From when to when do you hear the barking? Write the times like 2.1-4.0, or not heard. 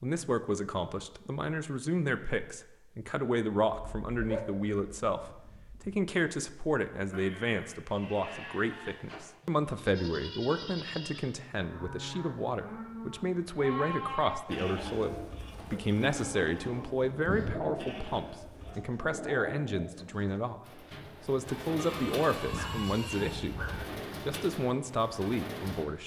3.7-6.0, 21.8-23.8.